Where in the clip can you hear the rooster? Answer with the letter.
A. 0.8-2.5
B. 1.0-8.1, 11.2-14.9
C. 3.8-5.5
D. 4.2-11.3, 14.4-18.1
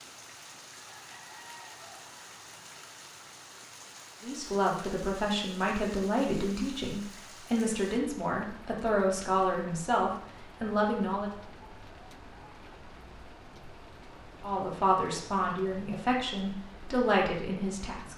A.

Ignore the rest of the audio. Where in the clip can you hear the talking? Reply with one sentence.
The talking can be heard from 4.2 to 11.3 s and from 14.4 to 18.1 s.